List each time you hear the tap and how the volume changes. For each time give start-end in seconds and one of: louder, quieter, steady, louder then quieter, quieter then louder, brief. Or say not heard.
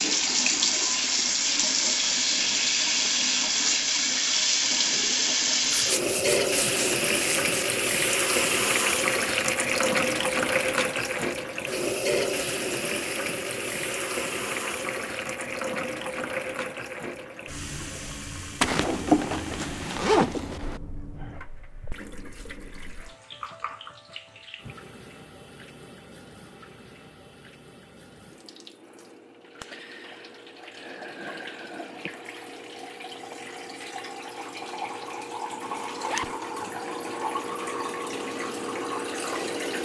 0.0-39.8 quieter then louder.